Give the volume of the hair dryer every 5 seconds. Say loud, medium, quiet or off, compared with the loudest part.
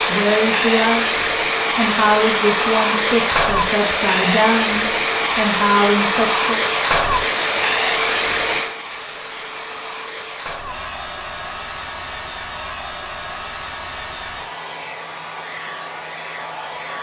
loud, loud, quiet, quiet.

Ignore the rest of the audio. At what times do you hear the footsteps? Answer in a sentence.
The footsteps can't be heard in this clip.